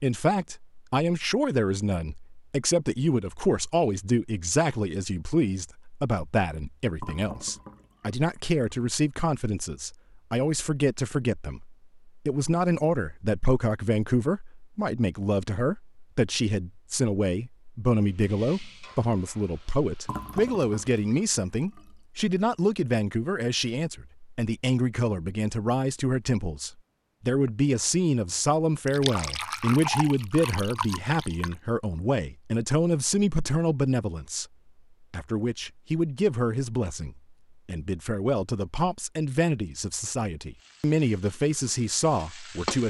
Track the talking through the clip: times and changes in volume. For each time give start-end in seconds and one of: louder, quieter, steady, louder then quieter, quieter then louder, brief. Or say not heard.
0.0-34.5 steady
35.1-42.8 quieter then louder.